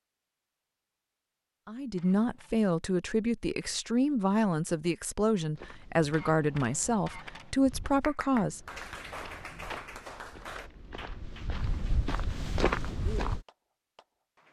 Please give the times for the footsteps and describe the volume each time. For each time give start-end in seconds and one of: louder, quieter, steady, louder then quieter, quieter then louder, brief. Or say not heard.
5.5-13.4 louder.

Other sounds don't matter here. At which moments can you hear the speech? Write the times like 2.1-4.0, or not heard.
1.6-8.7.